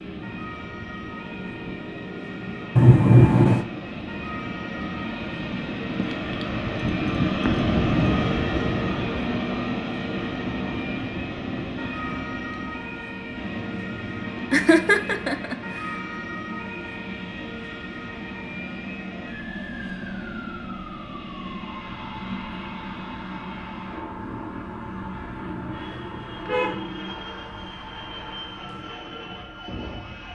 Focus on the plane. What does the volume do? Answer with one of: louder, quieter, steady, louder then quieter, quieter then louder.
louder then quieter.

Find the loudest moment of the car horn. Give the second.
3 s.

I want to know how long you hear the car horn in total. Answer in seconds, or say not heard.
2 s.